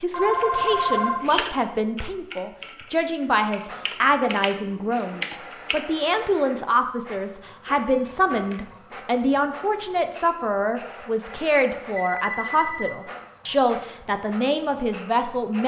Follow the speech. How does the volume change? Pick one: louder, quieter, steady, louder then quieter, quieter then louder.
steady.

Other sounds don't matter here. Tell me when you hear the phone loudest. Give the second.
1 s.